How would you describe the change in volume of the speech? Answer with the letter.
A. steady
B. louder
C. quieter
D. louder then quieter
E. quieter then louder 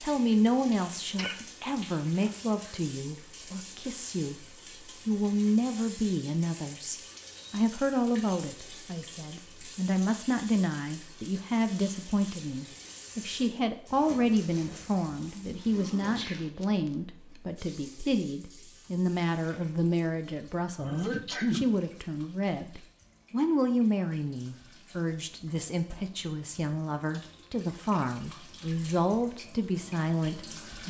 A.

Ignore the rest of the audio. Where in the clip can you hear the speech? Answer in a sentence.
The speech can be heard from 0.0 to 4.5 s and from 5.0 to 30.8 s.